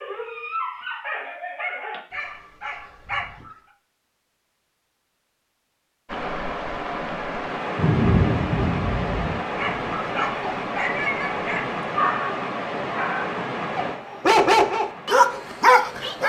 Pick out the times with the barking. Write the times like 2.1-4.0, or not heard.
0.0-3.5, 9.4-16.2.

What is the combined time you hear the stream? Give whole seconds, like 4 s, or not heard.
10 s.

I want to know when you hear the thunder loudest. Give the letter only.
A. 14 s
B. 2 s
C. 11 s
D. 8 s
D.